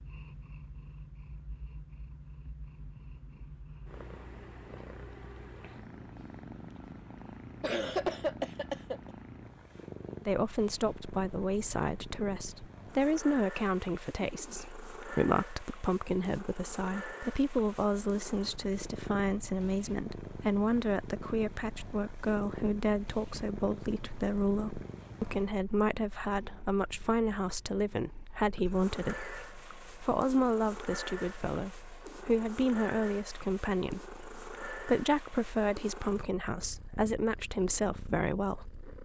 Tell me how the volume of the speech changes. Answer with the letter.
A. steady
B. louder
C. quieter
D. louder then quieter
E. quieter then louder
A.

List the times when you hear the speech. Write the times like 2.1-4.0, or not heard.
10.2-38.9.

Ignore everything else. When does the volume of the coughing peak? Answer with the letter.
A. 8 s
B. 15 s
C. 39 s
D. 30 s
A.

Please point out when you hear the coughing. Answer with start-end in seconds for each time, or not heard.
7.6-9.1, 14.2-14.8, 28.6-29.6.